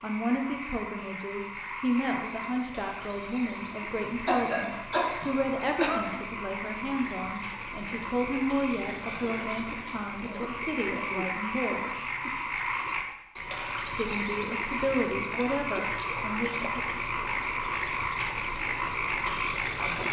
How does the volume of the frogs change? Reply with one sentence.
The loudness of the frogs goes up.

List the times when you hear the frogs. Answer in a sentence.
You can hear the frogs from 0.0 to 20.0 s.